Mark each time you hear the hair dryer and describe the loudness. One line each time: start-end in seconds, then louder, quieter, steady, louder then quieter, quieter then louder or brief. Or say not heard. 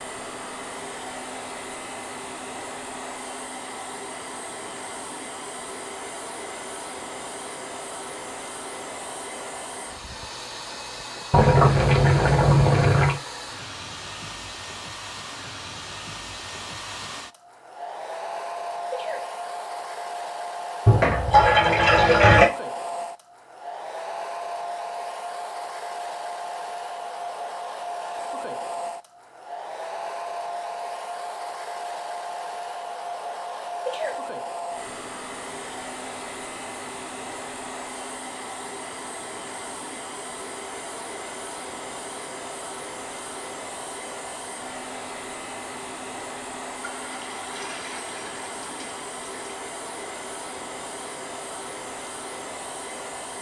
0.0-53.3 steady.